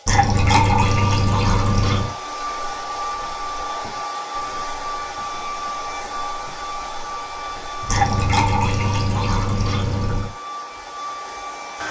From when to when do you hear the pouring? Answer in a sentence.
The pouring can be heard from 0.1 to 2.1 s and from 7.8 to 10.3 s.